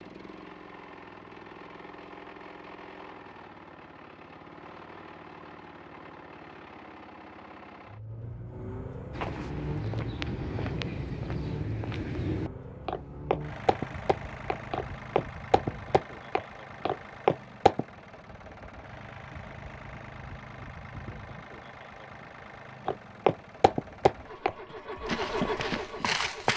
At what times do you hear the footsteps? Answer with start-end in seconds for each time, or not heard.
9.1-17.9, 22.9-26.5.